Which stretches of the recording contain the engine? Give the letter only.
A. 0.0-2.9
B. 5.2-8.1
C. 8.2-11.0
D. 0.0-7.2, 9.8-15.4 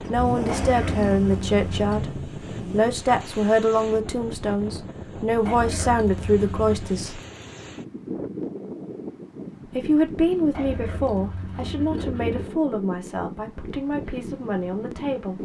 A.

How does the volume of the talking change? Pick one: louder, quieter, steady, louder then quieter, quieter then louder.
quieter.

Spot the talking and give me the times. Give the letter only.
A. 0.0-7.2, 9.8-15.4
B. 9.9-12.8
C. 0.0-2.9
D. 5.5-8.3
A.